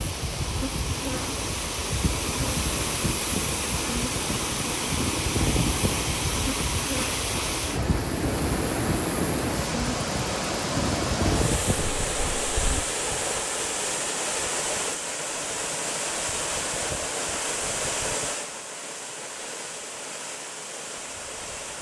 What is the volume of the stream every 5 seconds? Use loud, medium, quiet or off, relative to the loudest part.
loud, loud, loud, loud, medium.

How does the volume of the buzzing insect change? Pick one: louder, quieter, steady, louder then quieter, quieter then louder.
steady.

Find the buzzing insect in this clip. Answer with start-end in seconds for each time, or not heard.
0.0-12.8.